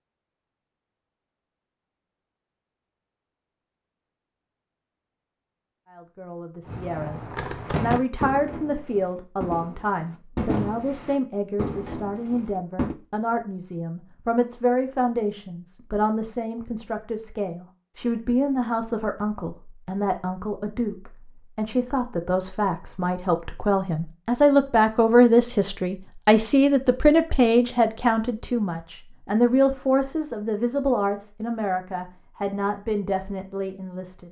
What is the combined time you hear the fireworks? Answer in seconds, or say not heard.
6 s.